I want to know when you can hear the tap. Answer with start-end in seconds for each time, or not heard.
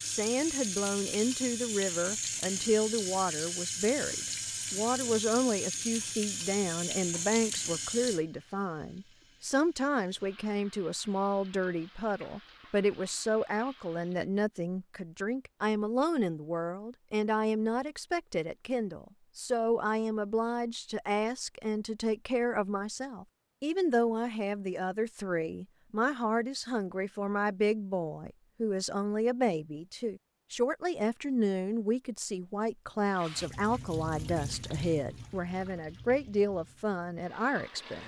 0.0-14.3, 33.1-38.0.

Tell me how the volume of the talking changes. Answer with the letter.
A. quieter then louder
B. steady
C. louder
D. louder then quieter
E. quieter
B.